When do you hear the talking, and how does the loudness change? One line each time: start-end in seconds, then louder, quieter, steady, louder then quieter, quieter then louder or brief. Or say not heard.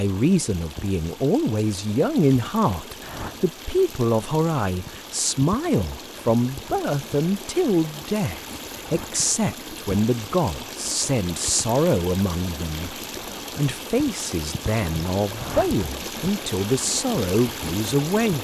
0.0-12.9 steady
13.6-18.3 steady.